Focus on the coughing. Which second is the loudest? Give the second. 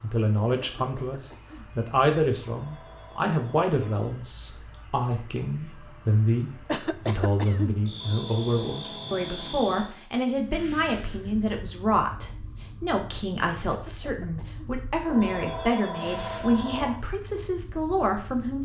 7 s.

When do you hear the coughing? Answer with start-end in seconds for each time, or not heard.
0.6-1.7, 6.7-7.8, 13.7-14.8.